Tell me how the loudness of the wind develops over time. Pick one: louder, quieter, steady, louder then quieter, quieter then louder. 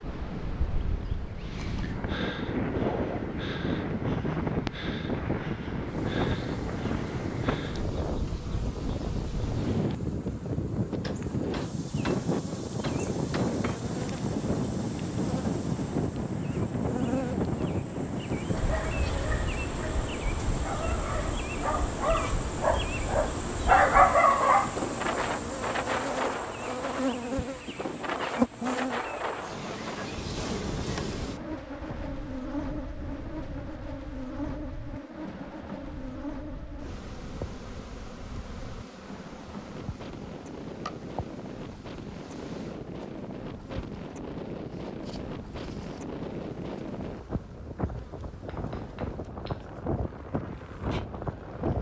quieter then louder.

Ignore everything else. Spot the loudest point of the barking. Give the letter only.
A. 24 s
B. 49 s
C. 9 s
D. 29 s
A.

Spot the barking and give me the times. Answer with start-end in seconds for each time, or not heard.
18.5-24.8.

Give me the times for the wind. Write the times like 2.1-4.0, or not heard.
0.0-51.7.